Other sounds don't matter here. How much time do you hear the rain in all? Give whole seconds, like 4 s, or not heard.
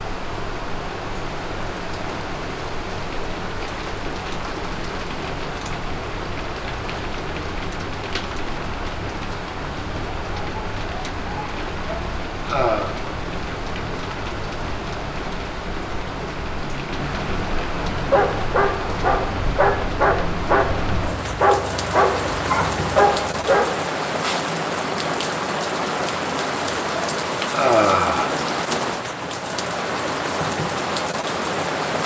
32 s.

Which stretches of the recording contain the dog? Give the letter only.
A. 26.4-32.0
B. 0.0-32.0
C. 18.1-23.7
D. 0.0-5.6
C.